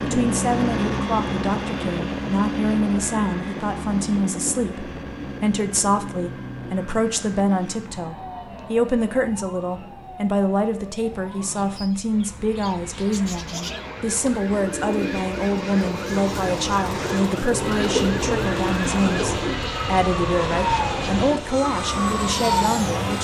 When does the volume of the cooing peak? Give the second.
18 s.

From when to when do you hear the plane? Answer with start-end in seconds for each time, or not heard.
0.0-23.2.